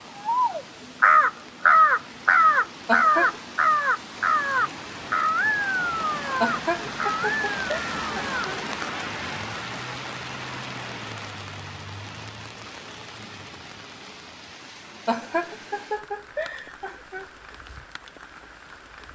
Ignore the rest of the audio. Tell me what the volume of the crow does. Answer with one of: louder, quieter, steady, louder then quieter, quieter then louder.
quieter.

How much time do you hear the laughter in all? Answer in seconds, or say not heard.
5 s.